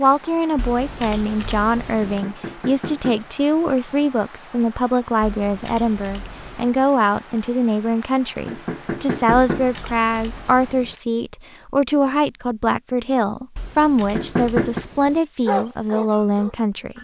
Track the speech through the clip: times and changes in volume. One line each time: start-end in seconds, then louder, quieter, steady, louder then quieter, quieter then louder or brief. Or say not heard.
0.0-16.9 steady.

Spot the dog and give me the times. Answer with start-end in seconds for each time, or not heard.
15.4-16.9.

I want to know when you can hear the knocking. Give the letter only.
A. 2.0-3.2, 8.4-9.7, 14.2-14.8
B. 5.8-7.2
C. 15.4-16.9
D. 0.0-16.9
A.